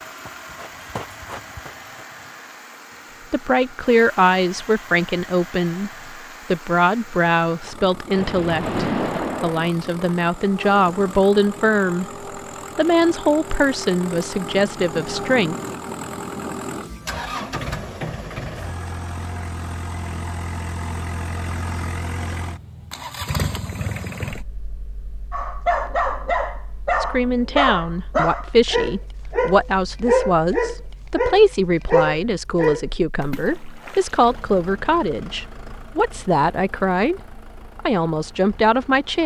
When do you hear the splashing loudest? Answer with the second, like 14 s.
9 s.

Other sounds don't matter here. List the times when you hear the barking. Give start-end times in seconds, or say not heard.
25.3-32.9.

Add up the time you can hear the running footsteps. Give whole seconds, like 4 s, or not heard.
2 s.